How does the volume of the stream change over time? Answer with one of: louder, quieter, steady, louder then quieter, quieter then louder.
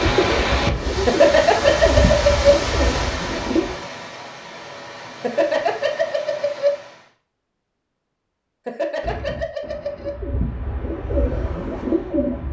quieter.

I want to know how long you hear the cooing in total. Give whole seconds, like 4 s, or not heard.
7 s.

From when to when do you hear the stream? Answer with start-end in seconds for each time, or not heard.
0.0-7.1.